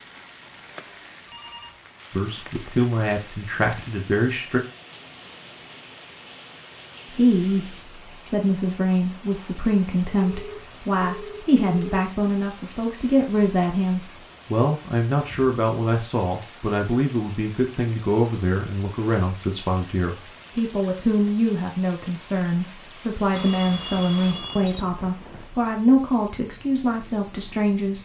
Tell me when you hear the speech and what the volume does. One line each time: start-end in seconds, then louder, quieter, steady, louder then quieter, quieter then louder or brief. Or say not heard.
2.1-4.6 brief
7.1-27.9 steady.